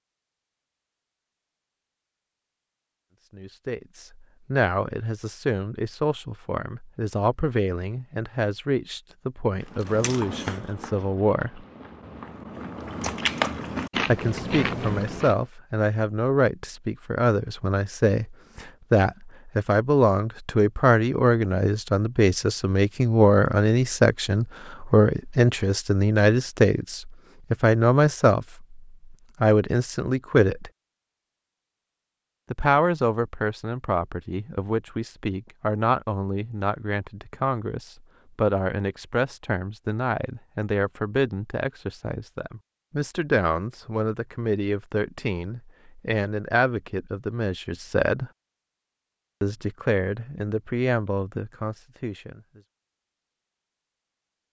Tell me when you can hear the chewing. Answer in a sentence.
The chewing can be heard from 9.6 to 15.4 s.